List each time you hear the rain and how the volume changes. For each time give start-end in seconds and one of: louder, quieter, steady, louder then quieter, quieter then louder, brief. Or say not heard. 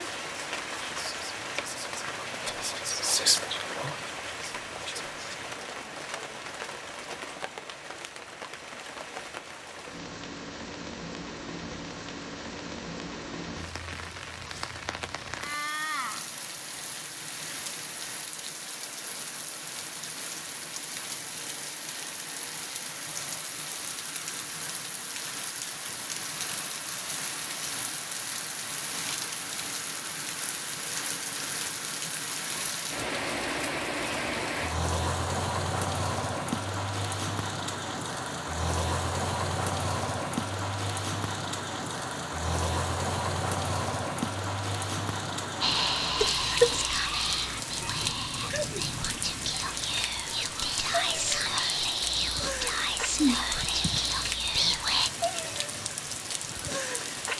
0.0-57.3 louder.